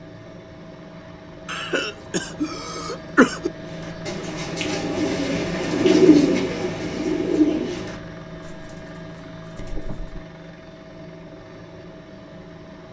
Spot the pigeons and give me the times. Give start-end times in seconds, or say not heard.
3.6-10.2.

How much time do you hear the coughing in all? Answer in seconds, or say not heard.
2 s.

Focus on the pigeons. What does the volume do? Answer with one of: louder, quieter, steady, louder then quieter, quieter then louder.
louder then quieter.